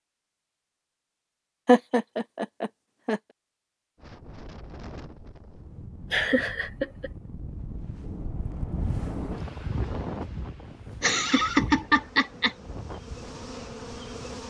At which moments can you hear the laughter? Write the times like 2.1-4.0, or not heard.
1.6-3.2, 6.1-7.1, 11.0-12.6.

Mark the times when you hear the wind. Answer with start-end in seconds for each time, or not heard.
4.0-14.4.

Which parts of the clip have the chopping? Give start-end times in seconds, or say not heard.
not heard.